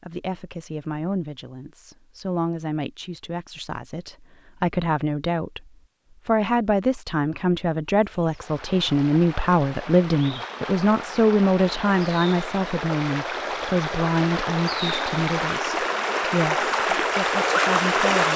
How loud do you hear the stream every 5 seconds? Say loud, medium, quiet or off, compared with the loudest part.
off, quiet, medium, loud.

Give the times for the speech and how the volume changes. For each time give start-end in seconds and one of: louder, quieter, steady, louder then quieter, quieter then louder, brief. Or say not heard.
0.0-18.3 louder then quieter.